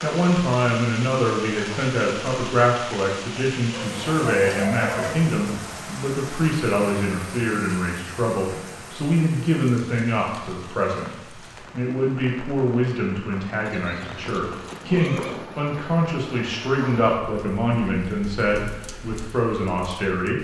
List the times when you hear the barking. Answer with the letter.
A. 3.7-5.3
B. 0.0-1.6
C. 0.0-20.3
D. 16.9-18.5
A.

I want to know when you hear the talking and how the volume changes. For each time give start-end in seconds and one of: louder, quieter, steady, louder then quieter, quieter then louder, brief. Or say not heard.
0.0-20.3 steady.